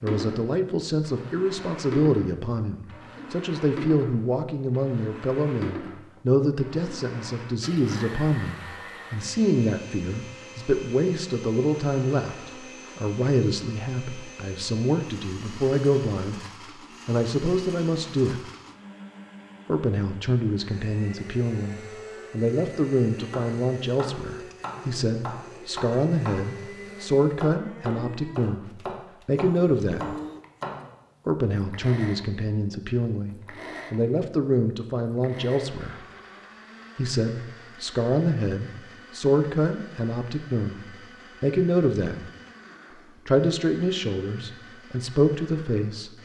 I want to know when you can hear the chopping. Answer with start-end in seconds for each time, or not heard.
23.1-30.9.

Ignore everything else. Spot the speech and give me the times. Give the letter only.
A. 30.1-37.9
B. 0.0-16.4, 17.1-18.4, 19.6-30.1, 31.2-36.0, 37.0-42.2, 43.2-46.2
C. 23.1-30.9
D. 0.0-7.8
B.